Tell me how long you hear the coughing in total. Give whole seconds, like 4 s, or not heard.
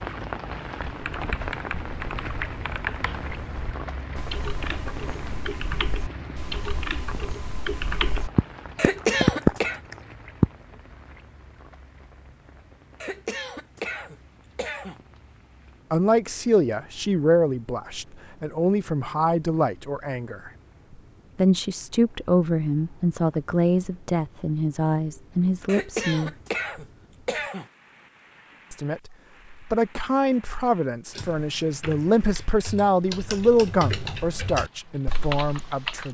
5 s.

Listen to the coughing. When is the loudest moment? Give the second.
9 s.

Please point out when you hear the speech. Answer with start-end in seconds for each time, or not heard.
15.9-20.5, 21.4-26.3, 28.7-36.0.